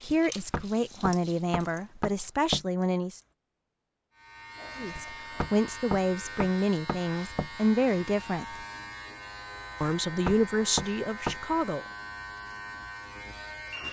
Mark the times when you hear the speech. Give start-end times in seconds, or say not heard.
0.0-3.2, 4.8-8.7, 9.8-11.8.